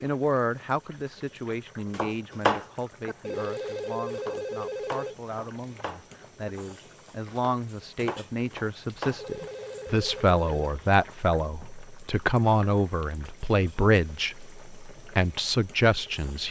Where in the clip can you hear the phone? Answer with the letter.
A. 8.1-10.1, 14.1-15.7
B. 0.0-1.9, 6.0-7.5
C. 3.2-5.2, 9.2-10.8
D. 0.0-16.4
C.